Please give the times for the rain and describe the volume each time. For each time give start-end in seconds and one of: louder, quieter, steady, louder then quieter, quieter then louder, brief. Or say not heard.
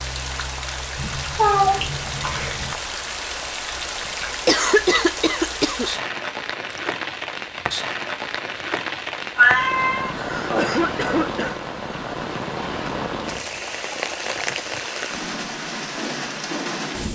0.0-17.1 steady.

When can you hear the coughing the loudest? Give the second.
5 s.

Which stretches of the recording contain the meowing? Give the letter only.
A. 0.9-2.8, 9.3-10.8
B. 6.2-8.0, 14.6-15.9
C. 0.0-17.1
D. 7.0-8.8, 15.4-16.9
A.